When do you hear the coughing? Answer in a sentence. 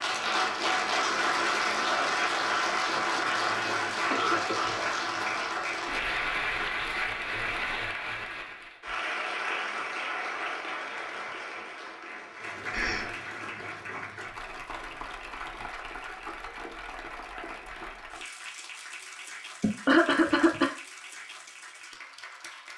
The coughing can be heard from 4.0 to 4.8 s, from 12.7 to 13.1 s and from 19.6 to 20.7 s.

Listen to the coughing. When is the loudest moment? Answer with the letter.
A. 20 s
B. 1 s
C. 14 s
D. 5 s
A.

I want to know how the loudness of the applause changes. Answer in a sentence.
The loudness of the applause goes down.